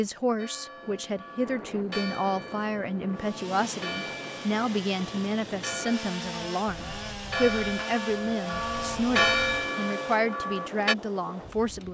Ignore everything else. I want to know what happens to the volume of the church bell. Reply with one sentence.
The loudness of the church bell goes up.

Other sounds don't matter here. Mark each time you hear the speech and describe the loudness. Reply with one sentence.
The speech can be heard from 0.0 to 11.9 s, at a steady volume.